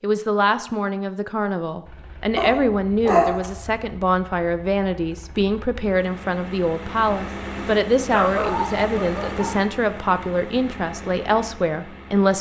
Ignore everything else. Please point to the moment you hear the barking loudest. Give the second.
3 s.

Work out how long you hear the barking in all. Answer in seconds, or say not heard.
3 s.